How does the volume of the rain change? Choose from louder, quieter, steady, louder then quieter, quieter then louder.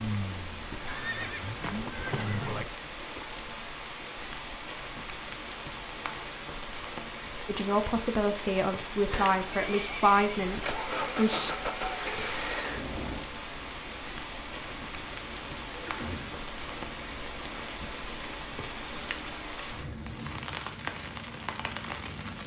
steady.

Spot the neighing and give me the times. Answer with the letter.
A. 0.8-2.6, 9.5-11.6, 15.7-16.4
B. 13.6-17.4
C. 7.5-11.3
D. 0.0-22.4
A.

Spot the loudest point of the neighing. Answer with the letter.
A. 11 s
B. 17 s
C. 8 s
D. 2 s
A.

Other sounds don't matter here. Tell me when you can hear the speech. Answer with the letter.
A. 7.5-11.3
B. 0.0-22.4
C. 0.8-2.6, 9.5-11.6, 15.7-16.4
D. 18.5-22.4
A.